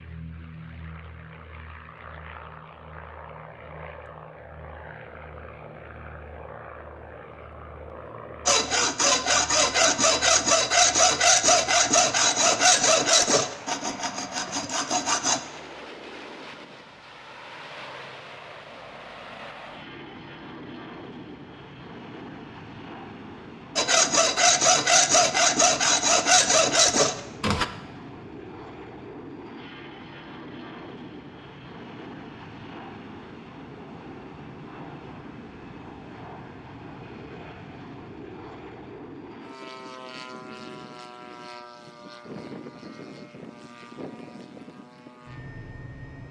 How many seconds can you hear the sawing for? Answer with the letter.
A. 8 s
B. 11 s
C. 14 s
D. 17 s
B.